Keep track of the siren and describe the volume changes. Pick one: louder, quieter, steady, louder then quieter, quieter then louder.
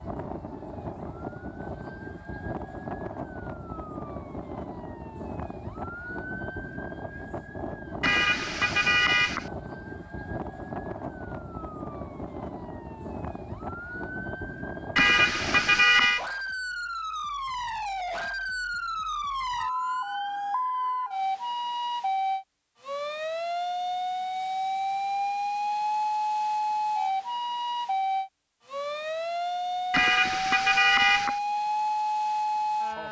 louder.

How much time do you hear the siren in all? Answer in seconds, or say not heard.
33 s.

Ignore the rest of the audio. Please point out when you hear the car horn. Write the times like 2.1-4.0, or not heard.
8.0-9.4, 14.9-16.2, 29.9-31.4.